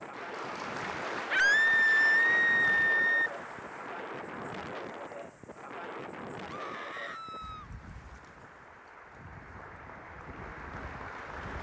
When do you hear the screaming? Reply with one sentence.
You can hear the screaming from 1.3 to 3.3 s and from 6.5 to 7.7 s.